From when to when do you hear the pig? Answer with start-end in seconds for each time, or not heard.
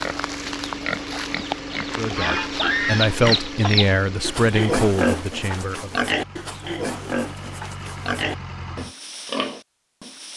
0.0-10.3.